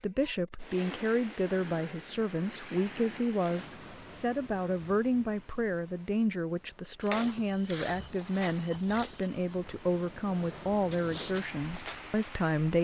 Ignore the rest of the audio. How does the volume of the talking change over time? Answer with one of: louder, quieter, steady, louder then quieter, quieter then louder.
steady.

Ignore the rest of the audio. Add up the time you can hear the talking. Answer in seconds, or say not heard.
13 s.